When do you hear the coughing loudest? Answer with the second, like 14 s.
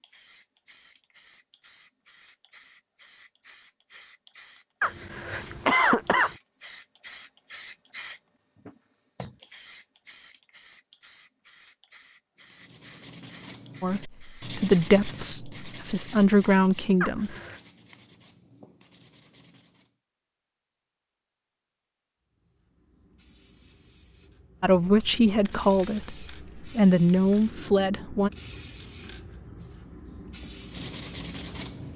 6 s.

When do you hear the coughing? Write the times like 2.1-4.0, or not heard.
4.8-6.3, 17.0-17.6.